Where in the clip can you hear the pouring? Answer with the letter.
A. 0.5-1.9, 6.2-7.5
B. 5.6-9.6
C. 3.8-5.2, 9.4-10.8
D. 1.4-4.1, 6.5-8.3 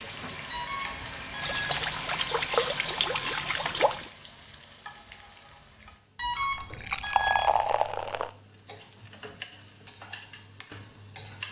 D.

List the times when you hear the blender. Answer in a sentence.
The blender can be heard from 0.0 to 4.0 s.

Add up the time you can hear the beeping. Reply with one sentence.
You can hear the beeping for 3 seconds altogether.